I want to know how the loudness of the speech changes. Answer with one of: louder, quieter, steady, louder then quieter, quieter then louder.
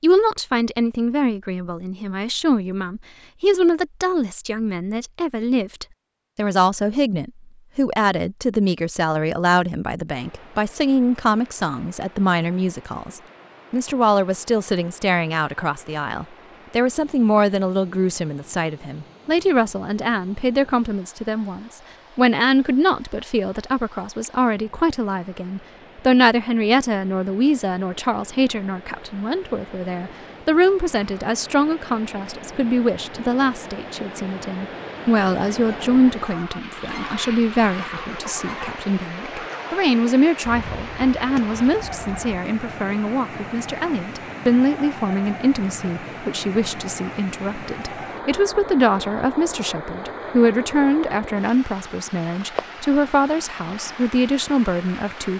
steady.